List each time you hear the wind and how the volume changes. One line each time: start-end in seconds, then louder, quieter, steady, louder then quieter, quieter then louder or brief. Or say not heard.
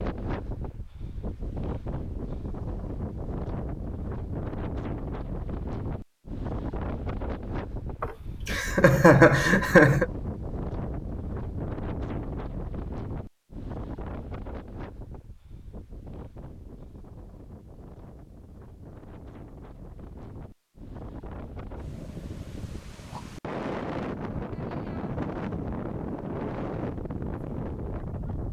0.0-28.4 quieter then louder.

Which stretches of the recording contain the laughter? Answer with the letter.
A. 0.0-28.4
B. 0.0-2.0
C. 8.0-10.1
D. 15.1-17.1
C.